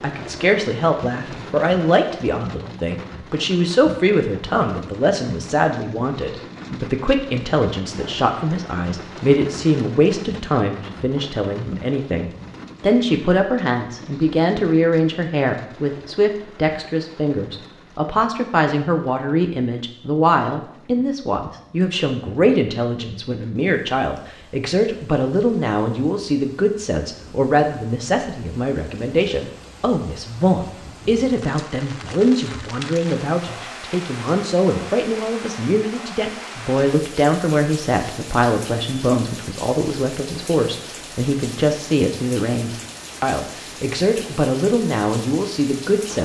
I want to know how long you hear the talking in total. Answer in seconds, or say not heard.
46 s.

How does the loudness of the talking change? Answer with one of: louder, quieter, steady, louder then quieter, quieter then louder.
steady.